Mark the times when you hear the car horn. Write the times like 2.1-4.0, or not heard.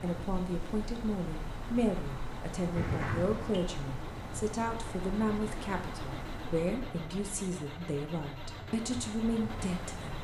2.8-3.5.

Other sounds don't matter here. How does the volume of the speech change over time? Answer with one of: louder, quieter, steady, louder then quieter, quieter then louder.
steady.